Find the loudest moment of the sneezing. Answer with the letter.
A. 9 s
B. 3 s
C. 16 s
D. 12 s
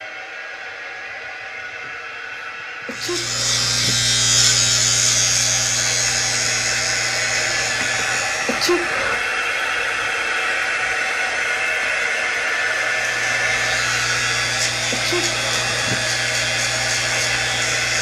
A.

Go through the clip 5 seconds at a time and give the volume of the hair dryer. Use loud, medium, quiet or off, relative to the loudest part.
medium, loud, loud, loud.